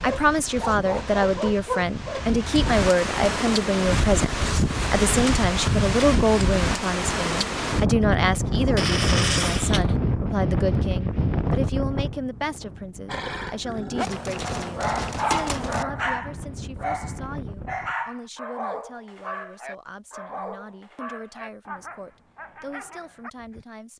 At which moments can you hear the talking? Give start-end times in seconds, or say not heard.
0.0-23.9.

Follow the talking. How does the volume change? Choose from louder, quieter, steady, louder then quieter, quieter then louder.
quieter.